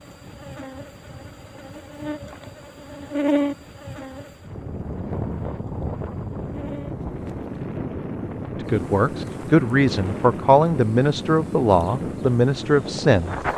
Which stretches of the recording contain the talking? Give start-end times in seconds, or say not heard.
8.6-13.3.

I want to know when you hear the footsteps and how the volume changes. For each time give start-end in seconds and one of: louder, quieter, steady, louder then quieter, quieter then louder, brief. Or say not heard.
not heard.